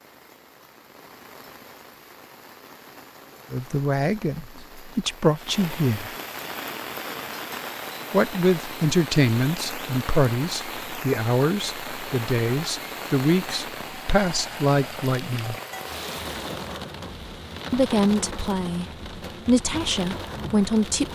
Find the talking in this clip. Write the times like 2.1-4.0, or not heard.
3.5-6.2, 8.1-15.6, 17.7-21.1.